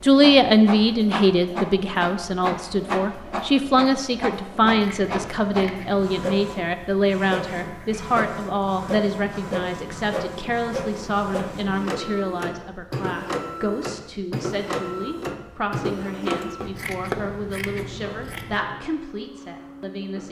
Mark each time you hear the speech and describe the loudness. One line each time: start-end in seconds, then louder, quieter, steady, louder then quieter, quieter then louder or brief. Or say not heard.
0.0-20.2 quieter.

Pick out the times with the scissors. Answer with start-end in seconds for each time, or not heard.
4.7-6.0, 16.6-18.6.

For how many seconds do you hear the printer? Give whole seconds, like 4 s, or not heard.
20 s.